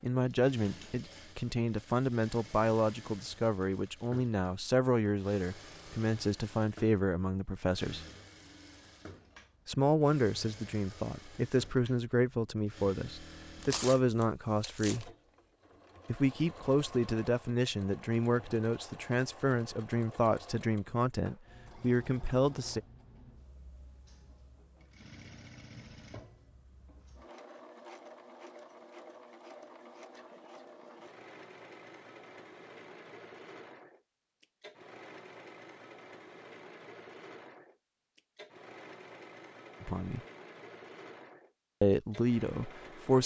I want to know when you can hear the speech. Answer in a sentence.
You can hear the speech from 0.0 to 8.0 s, from 9.7 to 15.1 s, from 16.1 to 22.8 s, from 39.8 to 40.2 s and from 41.8 to 43.2 s.